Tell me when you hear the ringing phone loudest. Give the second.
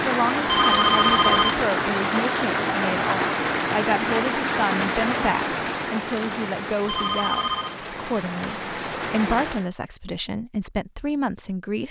1 s.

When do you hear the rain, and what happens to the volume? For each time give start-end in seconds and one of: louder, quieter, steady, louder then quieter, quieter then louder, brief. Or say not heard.
0.0-9.7 quieter.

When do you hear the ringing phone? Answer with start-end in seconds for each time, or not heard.
0.5-1.6, 6.8-7.8.